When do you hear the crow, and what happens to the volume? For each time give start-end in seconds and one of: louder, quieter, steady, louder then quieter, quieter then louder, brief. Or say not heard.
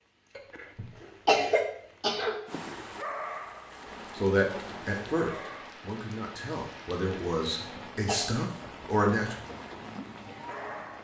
not heard.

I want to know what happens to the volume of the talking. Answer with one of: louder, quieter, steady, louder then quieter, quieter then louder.
quieter then louder.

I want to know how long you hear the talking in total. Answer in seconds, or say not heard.
5 s.